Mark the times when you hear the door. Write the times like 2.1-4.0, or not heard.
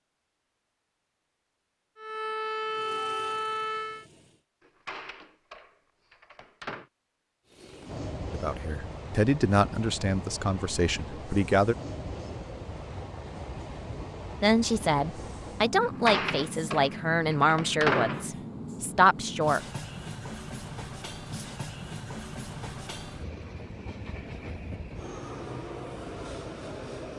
4.6-6.9, 15.8-18.3.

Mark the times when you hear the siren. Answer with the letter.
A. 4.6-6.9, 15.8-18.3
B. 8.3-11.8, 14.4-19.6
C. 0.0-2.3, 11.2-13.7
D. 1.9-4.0
D.